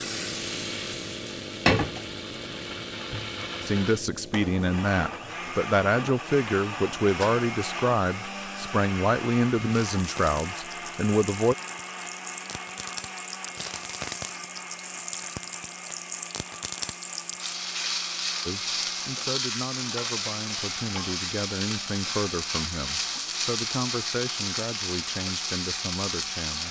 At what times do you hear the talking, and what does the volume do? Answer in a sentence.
The talking can be heard from 3.6 to 11.6 s, at a steady volume; and from 18.4 to 26.6 s, at a steady volume.